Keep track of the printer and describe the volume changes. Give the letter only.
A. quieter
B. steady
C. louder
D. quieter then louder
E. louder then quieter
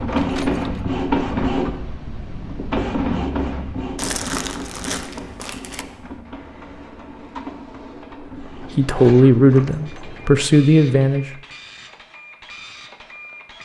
A.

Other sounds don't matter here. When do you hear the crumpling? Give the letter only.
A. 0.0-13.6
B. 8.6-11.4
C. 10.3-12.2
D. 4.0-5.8
D.